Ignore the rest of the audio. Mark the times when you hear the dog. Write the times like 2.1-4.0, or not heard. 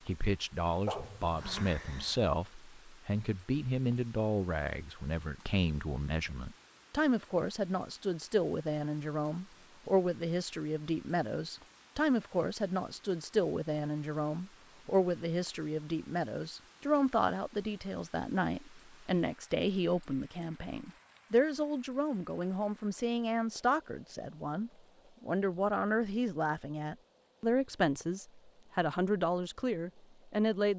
0.8-2.2.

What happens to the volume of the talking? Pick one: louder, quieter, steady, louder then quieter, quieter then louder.
steady.